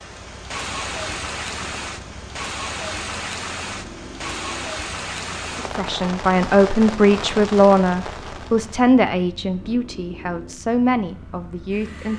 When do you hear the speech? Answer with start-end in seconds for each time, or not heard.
5.5-12.1.